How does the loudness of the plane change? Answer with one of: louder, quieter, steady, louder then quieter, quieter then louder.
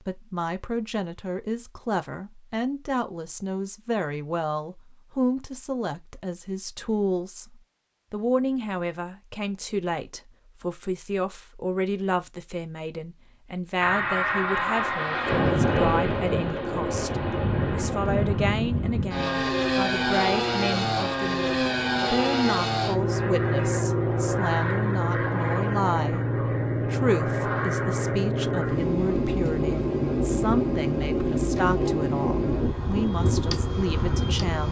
steady.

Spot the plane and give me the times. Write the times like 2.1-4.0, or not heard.
13.8-34.6.